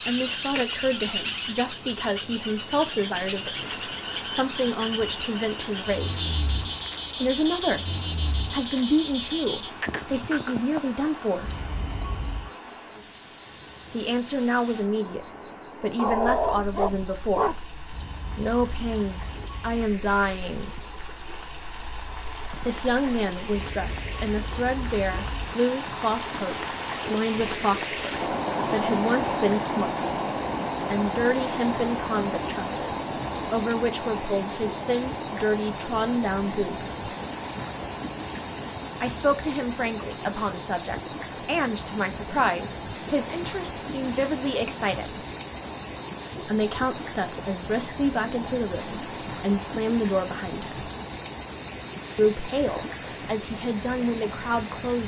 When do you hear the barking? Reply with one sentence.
The barking can be heard from 15.9 to 17.6 s.